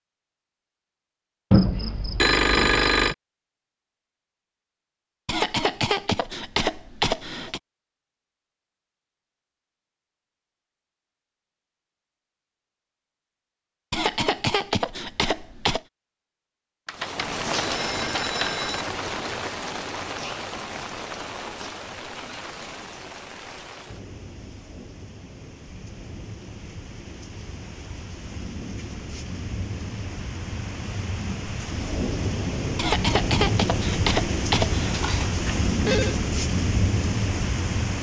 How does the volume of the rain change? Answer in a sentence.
The volume of the rain goes down, then up.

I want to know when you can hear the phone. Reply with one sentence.
The phone can be heard from 1.5 to 3.1 s, from 16.9 to 18.9 s and from 34.9 to 36.1 s.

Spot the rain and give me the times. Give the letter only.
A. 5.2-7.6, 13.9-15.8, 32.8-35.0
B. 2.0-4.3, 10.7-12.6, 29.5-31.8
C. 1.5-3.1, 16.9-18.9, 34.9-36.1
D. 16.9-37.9
D.